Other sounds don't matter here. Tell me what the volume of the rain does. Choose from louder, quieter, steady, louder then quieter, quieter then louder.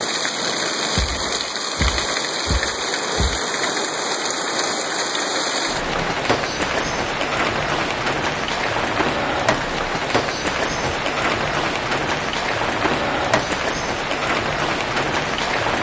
steady.